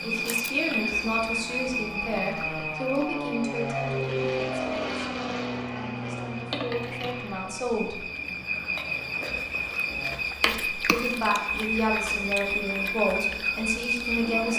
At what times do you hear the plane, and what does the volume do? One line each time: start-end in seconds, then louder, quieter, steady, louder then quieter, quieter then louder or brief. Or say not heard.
0.0-10.2 louder then quieter.